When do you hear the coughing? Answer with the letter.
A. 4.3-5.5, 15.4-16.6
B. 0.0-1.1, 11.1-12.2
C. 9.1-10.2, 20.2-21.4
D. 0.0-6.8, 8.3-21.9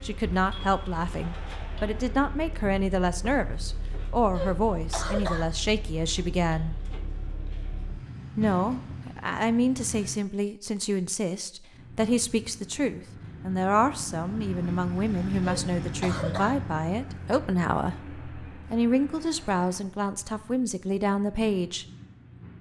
A.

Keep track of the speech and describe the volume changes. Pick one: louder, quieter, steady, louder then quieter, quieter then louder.
steady.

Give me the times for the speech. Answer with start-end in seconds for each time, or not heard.
0.0-6.8, 8.3-21.9.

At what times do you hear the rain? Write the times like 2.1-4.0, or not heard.
not heard.